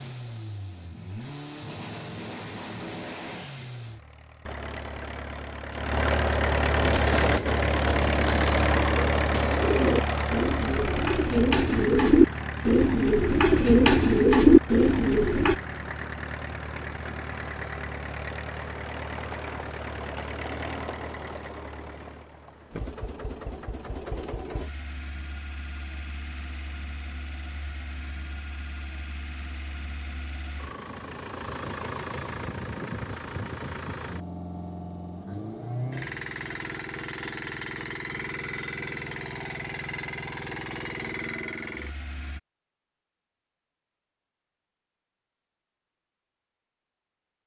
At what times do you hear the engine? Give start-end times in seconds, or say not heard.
0.0-42.4.